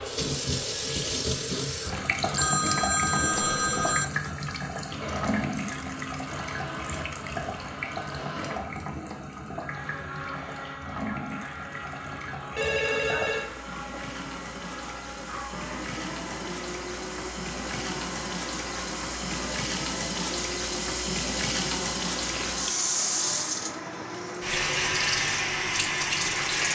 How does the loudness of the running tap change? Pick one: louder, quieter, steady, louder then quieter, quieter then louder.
quieter then louder.